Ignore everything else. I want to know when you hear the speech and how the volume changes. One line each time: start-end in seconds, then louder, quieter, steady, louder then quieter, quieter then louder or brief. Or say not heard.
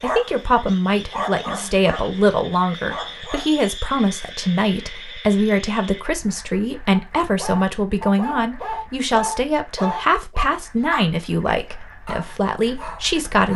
0.0-13.5 steady.